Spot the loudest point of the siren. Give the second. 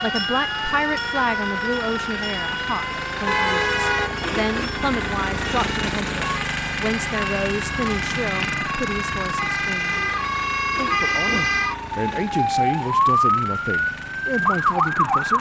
13 s.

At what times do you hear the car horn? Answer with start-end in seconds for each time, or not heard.
3.2-4.3.